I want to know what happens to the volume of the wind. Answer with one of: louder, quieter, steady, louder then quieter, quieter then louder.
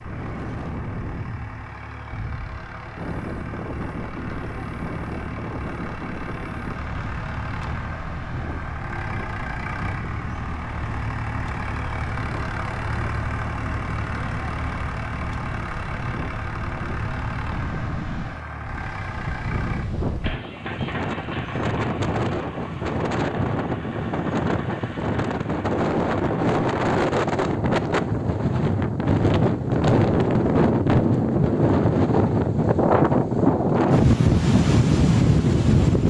louder.